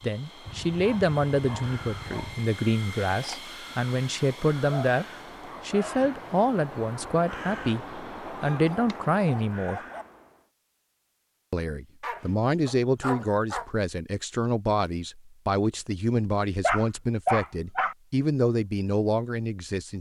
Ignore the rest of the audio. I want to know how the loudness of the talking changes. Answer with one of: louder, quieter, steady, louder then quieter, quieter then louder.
steady.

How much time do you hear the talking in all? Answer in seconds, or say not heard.
18 s.